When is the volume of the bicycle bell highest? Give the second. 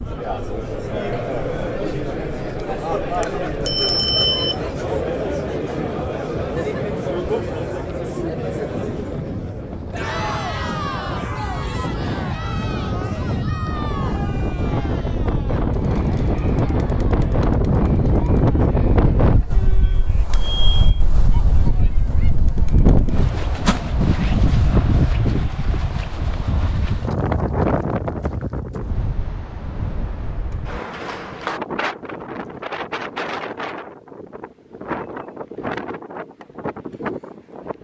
4 s.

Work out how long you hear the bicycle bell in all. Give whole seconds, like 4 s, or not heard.
3 s.